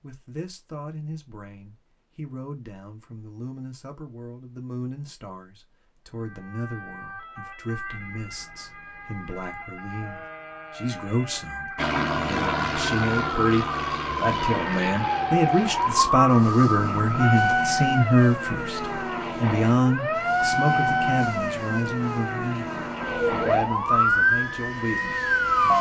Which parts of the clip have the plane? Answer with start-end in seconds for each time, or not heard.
11.8-25.7.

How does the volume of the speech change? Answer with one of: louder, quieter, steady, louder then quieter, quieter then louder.
louder then quieter.